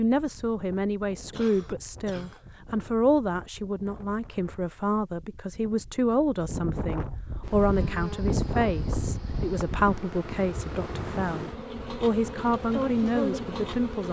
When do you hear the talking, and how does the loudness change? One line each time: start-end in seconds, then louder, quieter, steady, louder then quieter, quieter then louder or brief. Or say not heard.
0.0-14.0 steady.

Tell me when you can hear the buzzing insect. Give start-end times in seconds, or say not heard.
7.4-14.0.